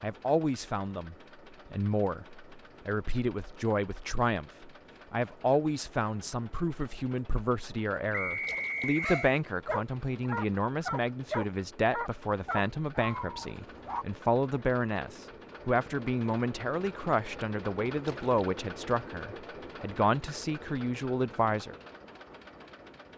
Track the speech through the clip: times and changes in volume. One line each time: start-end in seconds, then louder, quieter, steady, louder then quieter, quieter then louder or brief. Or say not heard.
0.0-21.8 steady.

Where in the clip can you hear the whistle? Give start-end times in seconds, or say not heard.
8.1-9.2.